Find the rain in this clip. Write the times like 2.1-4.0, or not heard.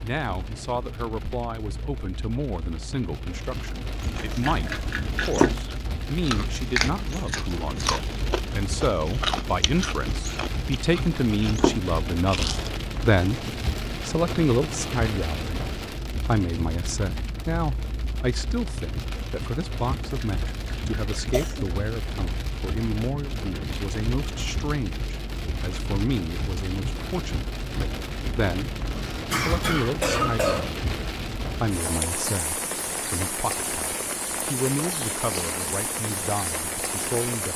0.0-37.5.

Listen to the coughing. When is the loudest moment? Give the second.
30 s.